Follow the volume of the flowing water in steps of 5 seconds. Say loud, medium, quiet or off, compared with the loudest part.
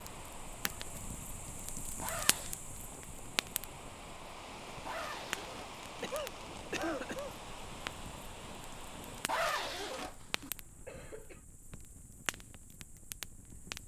loud, loud, off.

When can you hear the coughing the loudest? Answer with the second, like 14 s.
7 s.